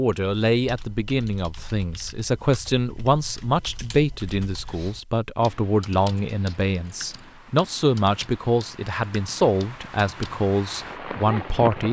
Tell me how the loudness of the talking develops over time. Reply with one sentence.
The volume of the talking stays about the same.